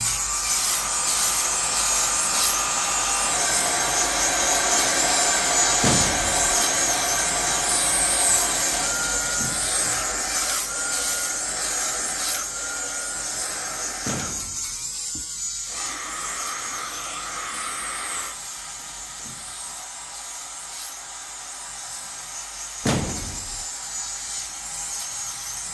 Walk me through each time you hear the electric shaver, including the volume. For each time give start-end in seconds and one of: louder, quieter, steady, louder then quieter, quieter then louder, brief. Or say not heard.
0.0-25.6 quieter.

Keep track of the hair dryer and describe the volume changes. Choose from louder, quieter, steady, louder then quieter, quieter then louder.
quieter.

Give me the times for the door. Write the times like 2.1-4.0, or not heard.
5.8-6.5, 14.1-14.8, 22.8-23.6.